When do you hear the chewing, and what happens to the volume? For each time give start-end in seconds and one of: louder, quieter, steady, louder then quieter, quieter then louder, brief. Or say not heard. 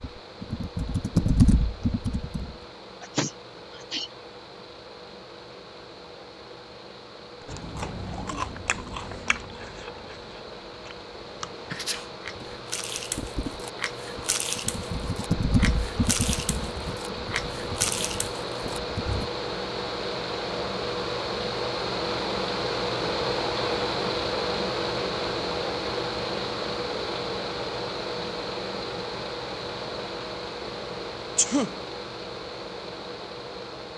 7.5-19.2 quieter then louder.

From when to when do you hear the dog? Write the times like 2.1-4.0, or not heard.
not heard.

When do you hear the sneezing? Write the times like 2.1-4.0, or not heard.
3.0-4.1, 11.7-12.1, 31.4-31.8.